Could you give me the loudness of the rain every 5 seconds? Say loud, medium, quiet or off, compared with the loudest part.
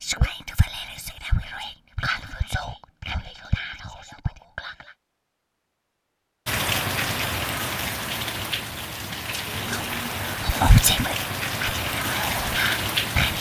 off, loud, loud.